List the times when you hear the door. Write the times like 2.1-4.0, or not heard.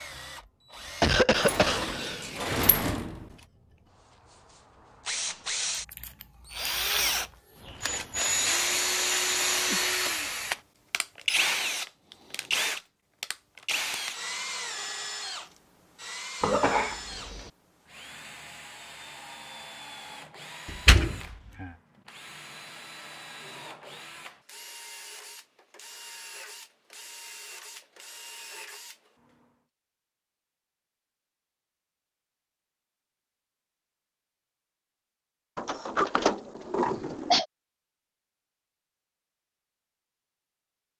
1.4-3.2, 20.6-21.7, 35.5-37.4.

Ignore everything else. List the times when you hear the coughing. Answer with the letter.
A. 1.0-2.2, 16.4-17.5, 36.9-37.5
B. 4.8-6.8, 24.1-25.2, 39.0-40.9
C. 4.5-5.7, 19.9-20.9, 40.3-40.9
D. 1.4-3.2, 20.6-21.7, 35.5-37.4
A.